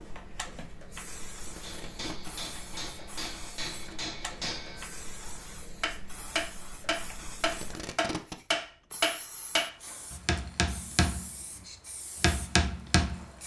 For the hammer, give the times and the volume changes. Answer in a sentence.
The hammer can be heard from 1.6 to 13.2 s, getting louder.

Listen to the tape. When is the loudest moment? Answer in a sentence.
The volume of the tape peaks at 8 seconds.